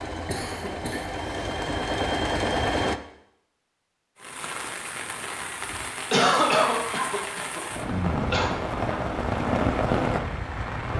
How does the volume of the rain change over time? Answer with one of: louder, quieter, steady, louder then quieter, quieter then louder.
louder.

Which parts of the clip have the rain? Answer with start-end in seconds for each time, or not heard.
4.2-10.9.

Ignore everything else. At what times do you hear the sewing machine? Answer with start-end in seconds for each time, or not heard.
0.0-3.0.